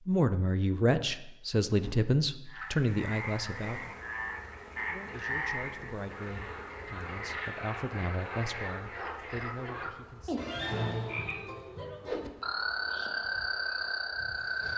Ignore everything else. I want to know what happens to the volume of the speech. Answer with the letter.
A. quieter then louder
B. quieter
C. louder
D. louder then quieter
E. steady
B.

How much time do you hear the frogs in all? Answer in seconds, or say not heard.
12 s.